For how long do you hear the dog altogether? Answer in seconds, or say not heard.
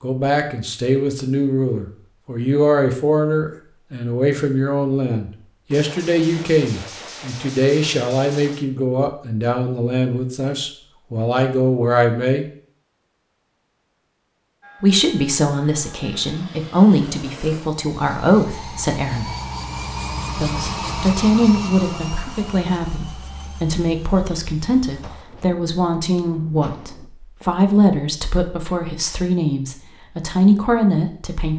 not heard.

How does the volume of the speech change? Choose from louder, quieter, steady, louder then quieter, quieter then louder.
steady.